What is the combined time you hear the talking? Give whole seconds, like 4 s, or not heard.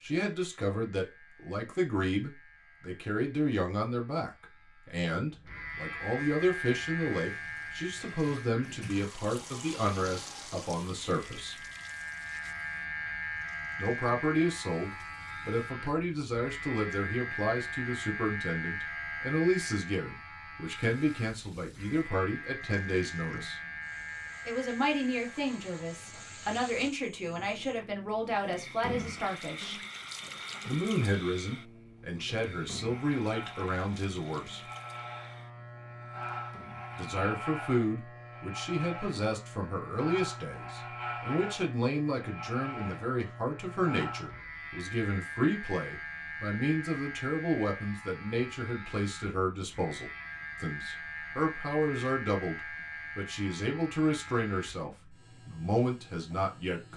51 s.